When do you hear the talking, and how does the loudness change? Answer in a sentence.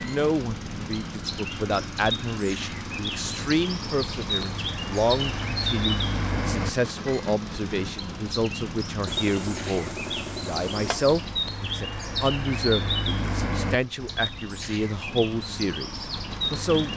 The talking can be heard from 0.0 to 16.9 s, at a steady volume.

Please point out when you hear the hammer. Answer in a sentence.
You can hear the hammer from 9.1 to 11.2 s.